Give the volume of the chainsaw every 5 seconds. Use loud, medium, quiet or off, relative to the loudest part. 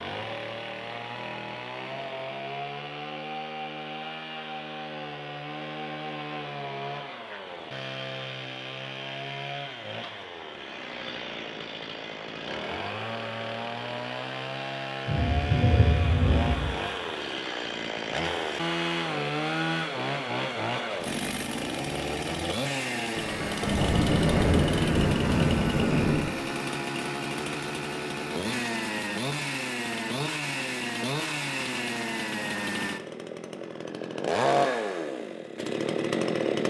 medium, medium, medium, loud, loud, loud, loud, loud.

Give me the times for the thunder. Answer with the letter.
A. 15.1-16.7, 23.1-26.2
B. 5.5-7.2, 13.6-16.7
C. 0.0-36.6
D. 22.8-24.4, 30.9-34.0
A.